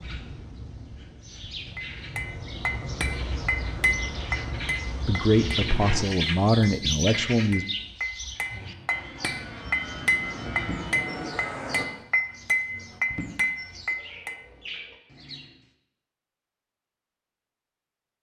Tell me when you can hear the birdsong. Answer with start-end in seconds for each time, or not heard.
0.0-15.6.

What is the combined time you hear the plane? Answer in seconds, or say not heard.
9 s.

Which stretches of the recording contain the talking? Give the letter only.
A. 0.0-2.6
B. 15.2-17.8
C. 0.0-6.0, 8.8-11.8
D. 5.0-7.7
D.